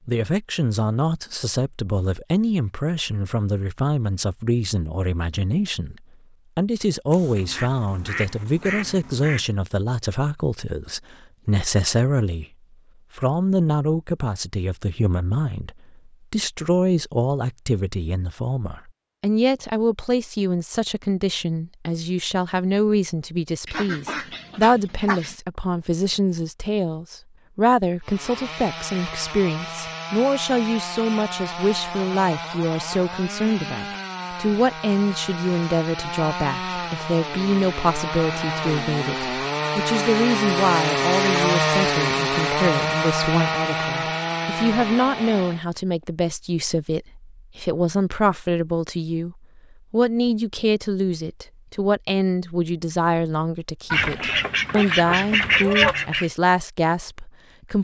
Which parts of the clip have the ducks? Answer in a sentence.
You can hear the ducks from 7.1 to 9.4 s, from 23.6 to 25.4 s and from 53.9 to 56.3 s.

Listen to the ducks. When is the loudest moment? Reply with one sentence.
The loudest moment of the ducks is at 56 seconds.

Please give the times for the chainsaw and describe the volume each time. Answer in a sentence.
You can hear the chainsaw from 28.0 to 45.6 s, getting louder.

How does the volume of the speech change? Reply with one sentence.
The volume of the speech stays about the same.